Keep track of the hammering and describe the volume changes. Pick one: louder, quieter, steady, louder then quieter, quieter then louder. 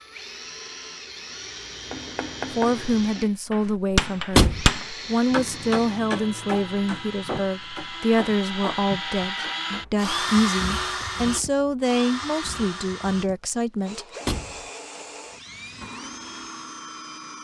louder then quieter.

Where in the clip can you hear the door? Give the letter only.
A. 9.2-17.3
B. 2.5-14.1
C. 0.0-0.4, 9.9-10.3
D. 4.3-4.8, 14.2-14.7
D.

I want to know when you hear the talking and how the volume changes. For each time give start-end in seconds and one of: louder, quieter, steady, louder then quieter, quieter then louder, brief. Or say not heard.
2.5-14.1 steady.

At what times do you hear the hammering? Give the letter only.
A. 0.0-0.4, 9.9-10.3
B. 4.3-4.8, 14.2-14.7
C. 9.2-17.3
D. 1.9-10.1
D.